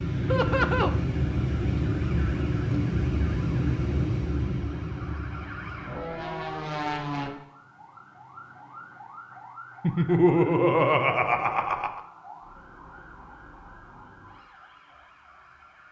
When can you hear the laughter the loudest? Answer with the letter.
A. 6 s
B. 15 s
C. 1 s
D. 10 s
D.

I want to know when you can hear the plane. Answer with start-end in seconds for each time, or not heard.
0.0-7.3.